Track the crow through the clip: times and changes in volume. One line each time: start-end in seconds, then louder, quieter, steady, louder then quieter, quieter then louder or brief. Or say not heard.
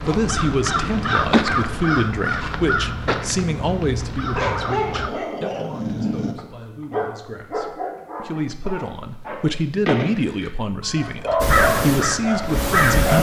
0.0-5.1 quieter
11.4-13.1 brief.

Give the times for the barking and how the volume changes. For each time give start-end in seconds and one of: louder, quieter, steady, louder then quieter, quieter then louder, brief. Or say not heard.
4.3-13.1 quieter then louder.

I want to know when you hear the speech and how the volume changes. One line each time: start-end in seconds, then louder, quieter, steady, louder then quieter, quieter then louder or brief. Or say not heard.
0.0-13.1 quieter then louder.